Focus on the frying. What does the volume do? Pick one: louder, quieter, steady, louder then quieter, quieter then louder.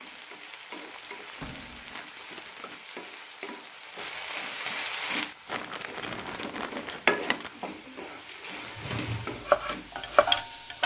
louder.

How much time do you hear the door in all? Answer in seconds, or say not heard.
3 s.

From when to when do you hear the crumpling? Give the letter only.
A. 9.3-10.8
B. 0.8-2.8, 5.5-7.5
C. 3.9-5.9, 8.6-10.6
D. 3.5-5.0
B.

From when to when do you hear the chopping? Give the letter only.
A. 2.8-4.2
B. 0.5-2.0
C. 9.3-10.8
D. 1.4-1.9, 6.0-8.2
C.